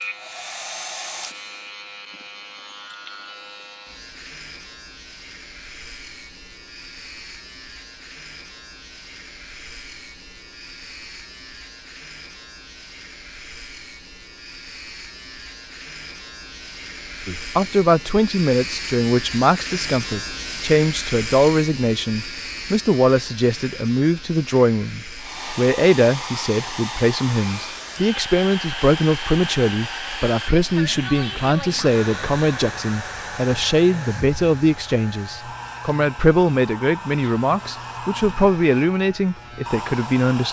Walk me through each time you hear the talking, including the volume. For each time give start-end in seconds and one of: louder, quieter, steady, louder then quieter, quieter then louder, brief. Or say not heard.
17.2-40.4 steady.